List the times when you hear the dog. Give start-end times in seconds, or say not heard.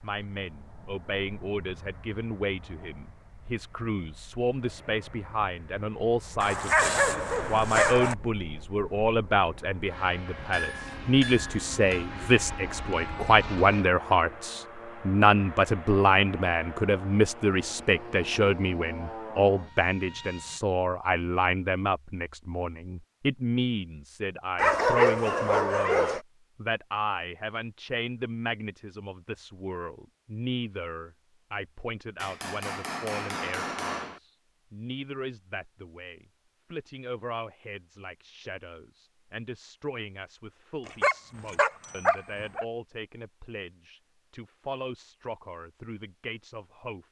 6.4-8.2, 24.6-26.2, 40.9-42.6.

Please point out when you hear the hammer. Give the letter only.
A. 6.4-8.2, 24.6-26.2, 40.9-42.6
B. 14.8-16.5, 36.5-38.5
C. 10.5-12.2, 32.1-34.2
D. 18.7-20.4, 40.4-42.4
C.